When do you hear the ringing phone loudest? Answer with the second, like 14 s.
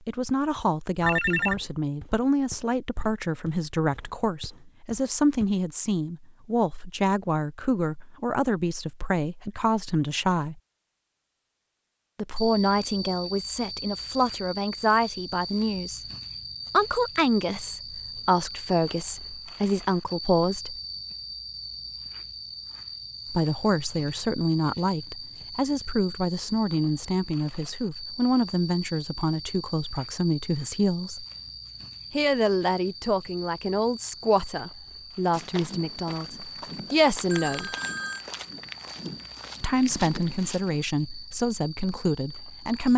1 s.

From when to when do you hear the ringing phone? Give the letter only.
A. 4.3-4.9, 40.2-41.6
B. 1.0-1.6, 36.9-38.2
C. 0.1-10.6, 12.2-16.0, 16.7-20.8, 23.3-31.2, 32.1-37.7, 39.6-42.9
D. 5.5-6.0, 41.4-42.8
B.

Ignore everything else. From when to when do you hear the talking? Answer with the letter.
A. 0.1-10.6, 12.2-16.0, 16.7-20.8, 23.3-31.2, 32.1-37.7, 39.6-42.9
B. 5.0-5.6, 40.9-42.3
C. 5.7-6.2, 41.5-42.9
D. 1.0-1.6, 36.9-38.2
A.